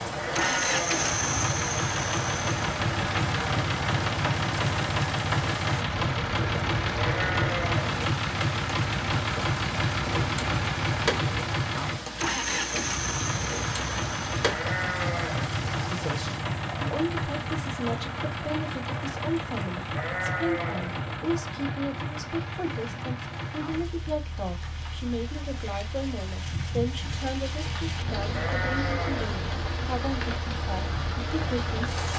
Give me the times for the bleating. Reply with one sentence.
You can hear the bleating from 0.1 to 1.1 s, from 7.0 to 7.8 s, from 14.4 to 15.5 s, from 19.9 to 21.1 s and from 28.2 to 29.4 s.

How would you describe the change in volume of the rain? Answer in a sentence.
The loudness of the rain goes down, then up.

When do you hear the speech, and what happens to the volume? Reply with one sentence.
The speech can be heard from 15.9 to 31.9 s, at a steady volume.